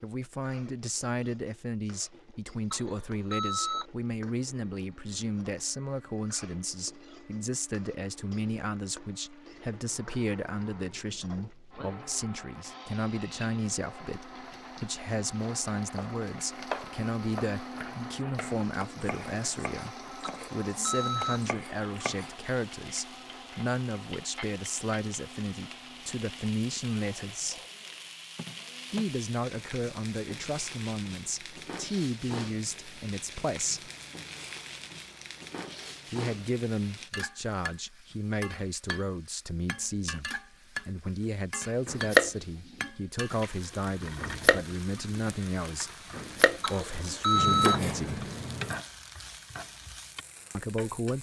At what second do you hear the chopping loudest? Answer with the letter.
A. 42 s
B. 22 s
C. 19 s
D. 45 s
A.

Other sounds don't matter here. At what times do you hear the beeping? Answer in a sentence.
You can hear the beeping from 2.7 to 3.9 s, from 20.2 to 21.4 s and from 46.6 to 47.8 s.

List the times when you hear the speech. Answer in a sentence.
The speech can be heard from 0.0 to 27.6 s, from 28.9 to 33.9 s, from 36.1 to 48.2 s and from 50.5 to 51.1 s.